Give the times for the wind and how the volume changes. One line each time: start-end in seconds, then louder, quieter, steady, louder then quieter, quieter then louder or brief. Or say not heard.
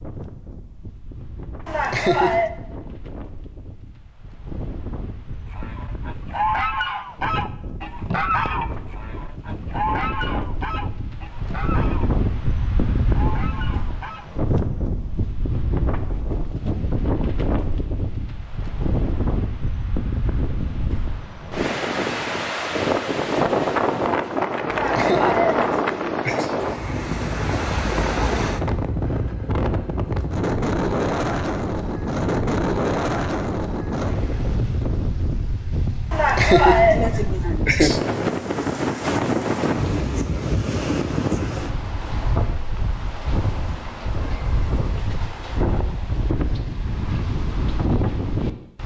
0.0-48.8 louder.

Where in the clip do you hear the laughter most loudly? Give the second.
37 s.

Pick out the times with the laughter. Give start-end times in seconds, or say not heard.
1.6-2.5, 24.6-26.5, 36.1-38.0.